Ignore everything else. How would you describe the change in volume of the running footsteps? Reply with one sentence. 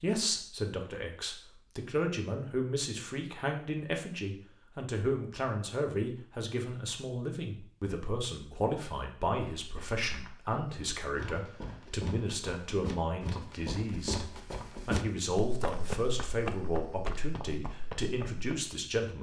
The loudness of the running footsteps goes up, then down.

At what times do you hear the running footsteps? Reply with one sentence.
The running footsteps can be heard from 9.4 to 18.7 s.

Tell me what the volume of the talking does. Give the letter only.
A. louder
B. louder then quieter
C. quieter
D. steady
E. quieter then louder
D.